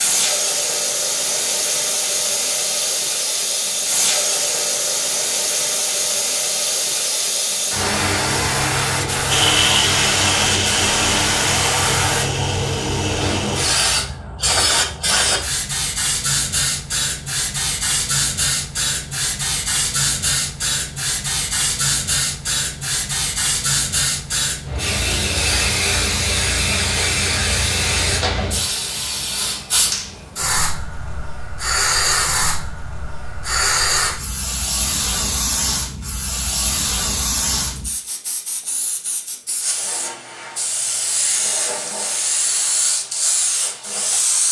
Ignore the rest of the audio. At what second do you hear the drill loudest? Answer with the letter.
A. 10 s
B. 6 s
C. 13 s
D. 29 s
A.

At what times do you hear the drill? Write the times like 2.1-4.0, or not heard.
9.2-13.7.